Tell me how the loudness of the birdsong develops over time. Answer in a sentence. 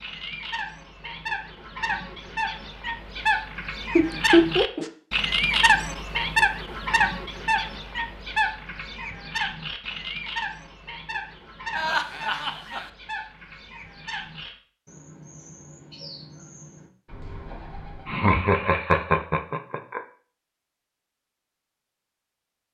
The volume of the birdsong goes up, then down.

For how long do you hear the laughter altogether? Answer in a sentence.
The laughter can be heard for 4 seconds in total.